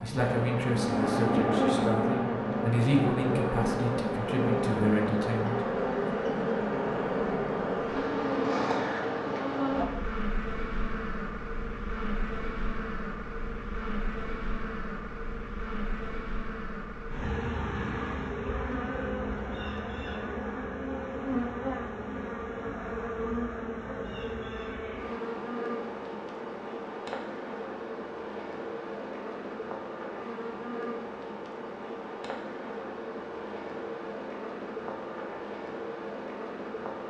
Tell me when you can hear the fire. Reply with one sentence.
The fire can't be heard in this clip.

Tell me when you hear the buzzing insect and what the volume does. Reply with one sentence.
The buzzing insect can be heard from 0.0 to 37.0 s, getting quieter.